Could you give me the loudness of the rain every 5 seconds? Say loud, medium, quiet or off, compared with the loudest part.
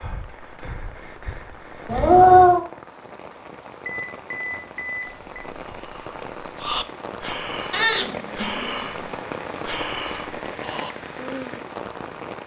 medium, loud, loud.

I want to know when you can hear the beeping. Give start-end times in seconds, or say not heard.
3.9-5.5.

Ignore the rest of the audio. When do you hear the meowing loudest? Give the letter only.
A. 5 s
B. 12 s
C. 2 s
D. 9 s
C.